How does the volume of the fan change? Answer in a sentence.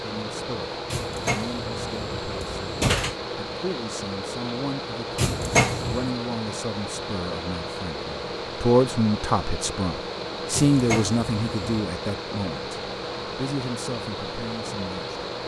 The volume of the fan stays about the same.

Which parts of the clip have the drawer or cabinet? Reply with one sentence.
The drawer or cabinet can be heard from 0.9 to 3.1 s, from 5.2 to 6.1 s and from 10.5 to 11.8 s.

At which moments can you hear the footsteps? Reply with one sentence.
The footsteps can't be heard in this clip.